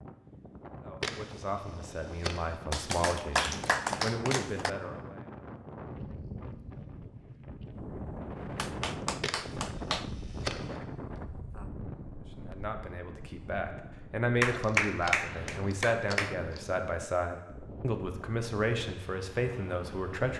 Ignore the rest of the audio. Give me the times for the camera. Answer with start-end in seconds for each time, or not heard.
1.0-2.5, 9.2-10.8, 14.4-16.8.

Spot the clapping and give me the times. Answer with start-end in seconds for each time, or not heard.
2.7-4.7, 8.6-10.1, 14.4-16.4.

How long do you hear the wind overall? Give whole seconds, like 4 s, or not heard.
20 s.